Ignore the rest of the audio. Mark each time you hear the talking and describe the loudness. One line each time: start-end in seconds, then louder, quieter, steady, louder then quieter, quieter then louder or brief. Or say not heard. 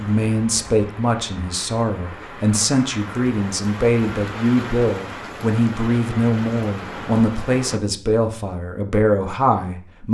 0.0-10.1 steady.